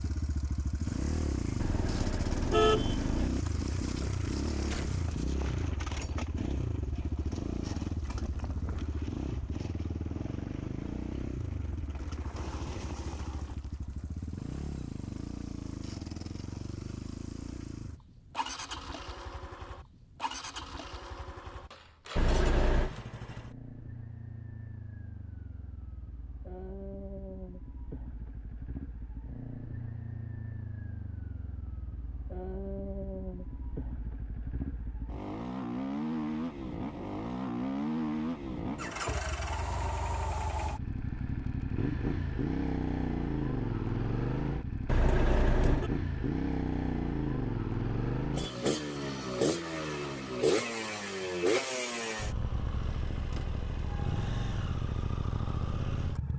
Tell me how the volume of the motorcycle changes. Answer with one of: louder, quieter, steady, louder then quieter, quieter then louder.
quieter then louder.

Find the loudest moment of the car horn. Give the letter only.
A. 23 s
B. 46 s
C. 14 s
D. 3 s
D.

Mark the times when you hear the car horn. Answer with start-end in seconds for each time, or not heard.
1.6-3.3, 22.1-22.9, 44.9-45.9.